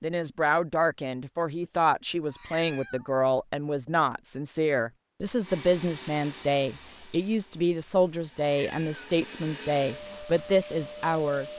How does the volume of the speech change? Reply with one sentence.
The volume of the speech stays about the same.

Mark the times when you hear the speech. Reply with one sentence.
The speech can be heard from 0.0 to 11.5 s.